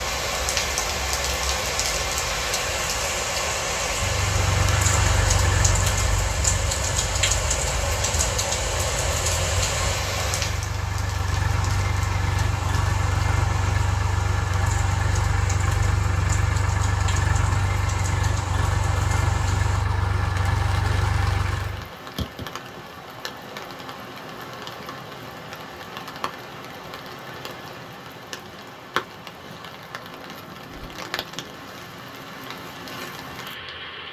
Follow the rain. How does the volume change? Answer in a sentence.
The volume of the rain goes down.